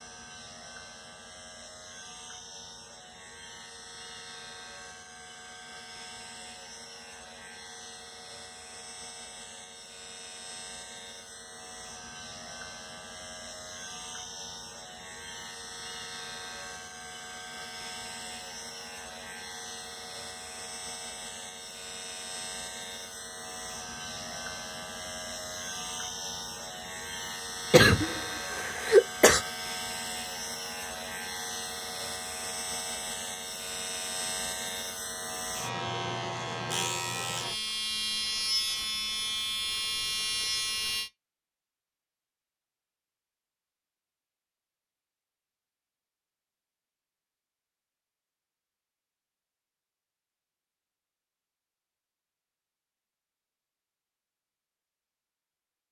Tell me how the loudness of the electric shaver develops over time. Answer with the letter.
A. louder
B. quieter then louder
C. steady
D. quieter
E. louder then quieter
A.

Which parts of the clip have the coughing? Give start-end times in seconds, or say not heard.
27.7-29.4.